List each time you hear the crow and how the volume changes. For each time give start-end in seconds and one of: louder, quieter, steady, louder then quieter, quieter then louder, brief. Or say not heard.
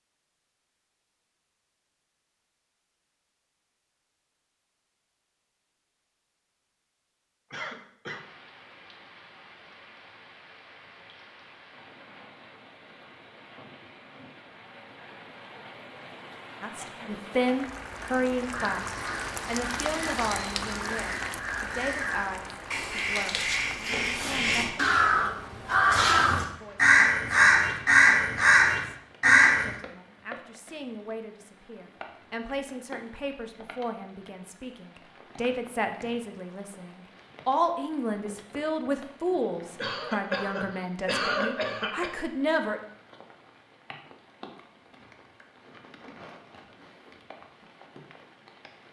18.4-29.8 louder.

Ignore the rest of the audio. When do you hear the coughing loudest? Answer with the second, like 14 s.
41 s.